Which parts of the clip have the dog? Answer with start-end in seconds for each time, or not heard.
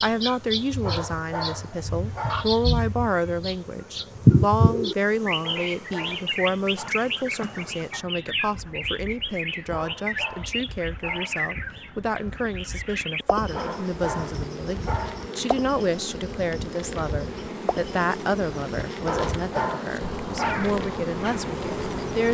0.8-2.6, 5.4-7.0, 9.7-11.5, 13.5-15.3, 19.1-20.7.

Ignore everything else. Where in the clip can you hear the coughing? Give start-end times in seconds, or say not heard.
not heard.